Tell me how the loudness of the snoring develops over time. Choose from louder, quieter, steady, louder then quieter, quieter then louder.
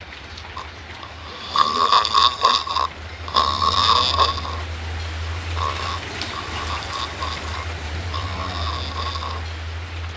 quieter.